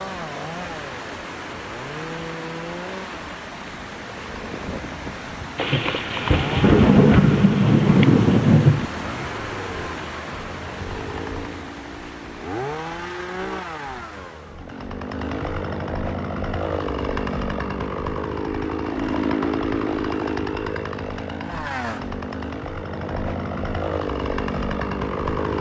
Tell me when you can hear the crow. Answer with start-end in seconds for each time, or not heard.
not heard.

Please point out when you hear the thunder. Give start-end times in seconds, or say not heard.
5.5-8.8.